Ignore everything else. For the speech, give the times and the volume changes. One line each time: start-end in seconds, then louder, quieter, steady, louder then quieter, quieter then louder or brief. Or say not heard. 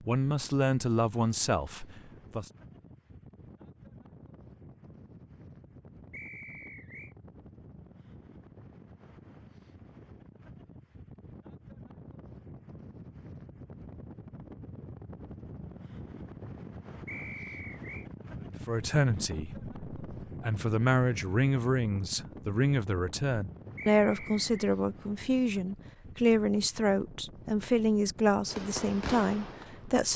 0.1-2.5 brief
18.4-30.1 steady.